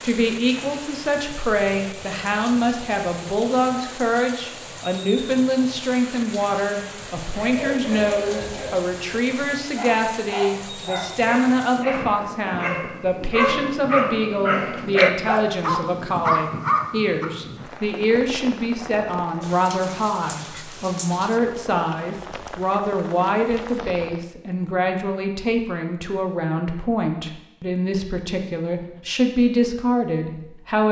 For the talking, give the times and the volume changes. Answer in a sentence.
The talking can be heard from 0.0 to 30.8 s, at a steady volume.